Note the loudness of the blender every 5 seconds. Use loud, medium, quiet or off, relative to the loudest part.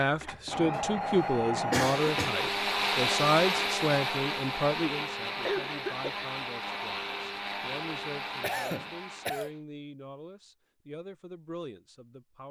loud, medium, off.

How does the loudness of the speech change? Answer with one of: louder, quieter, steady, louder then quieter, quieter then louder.
quieter.